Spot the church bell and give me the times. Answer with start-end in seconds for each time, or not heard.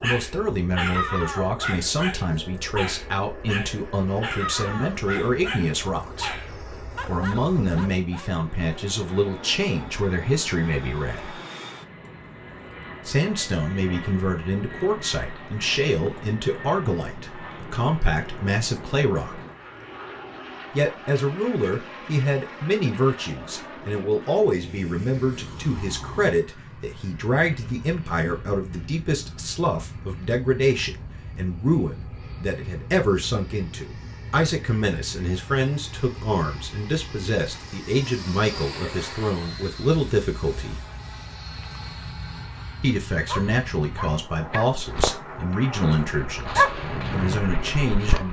not heard.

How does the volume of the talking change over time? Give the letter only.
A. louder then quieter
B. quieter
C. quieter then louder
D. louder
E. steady
E.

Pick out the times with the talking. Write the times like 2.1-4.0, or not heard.
0.0-6.3, 7.0-11.4, 13.1-19.4, 20.8-40.8, 42.8-48.2.